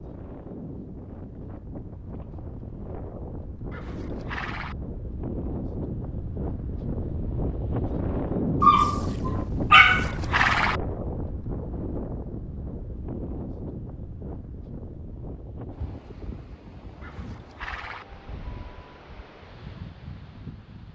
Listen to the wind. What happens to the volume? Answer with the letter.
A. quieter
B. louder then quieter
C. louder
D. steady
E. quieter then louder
B.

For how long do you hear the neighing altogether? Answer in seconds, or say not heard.
3 s.